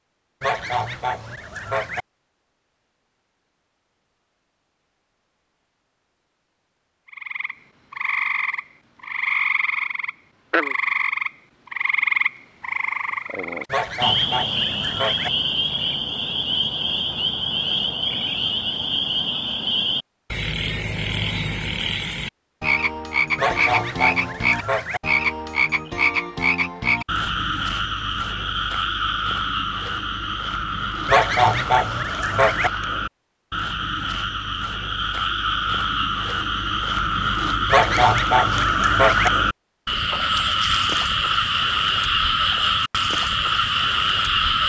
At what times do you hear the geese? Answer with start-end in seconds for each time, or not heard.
0.4-2.0, 13.7-15.3, 23.4-25.0, 31.1-32.7, 37.6-39.3.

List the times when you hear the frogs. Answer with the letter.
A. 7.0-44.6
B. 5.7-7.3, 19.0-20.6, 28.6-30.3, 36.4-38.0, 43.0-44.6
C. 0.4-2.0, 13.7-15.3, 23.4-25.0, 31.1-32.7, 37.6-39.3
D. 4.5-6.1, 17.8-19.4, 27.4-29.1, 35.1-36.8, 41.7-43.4
A.